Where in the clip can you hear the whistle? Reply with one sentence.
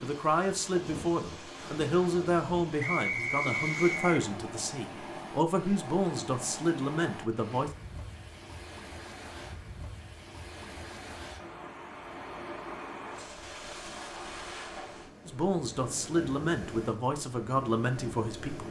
The whistle can be heard from 2.8 to 4.2 s.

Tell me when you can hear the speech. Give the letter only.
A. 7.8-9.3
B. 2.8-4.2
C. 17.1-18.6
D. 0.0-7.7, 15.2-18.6
D.